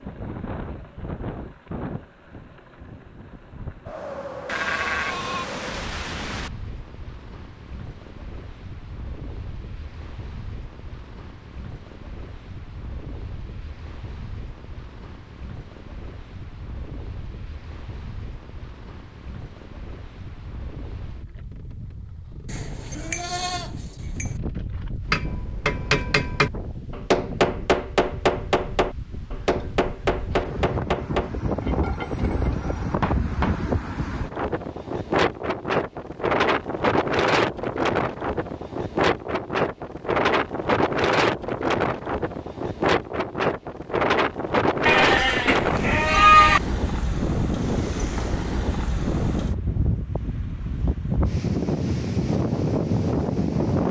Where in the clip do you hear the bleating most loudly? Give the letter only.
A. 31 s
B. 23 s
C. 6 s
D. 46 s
D.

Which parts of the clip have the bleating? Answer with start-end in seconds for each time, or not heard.
4.5-6.5, 22.4-24.4, 44.9-46.6.